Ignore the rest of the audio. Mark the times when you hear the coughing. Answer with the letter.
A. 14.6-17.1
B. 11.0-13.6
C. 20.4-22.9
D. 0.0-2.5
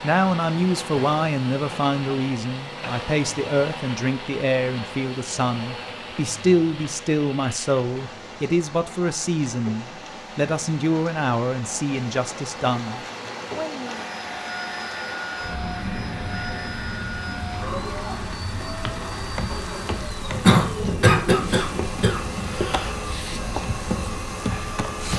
C.